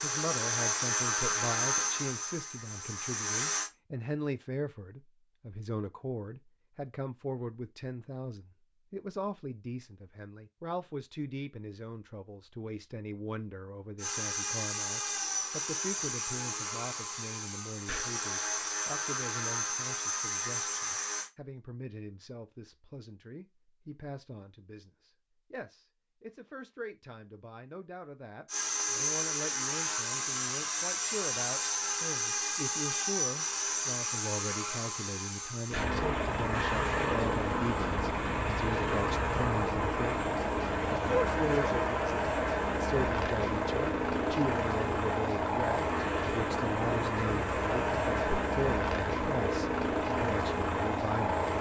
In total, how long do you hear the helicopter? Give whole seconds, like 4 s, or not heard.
34 s.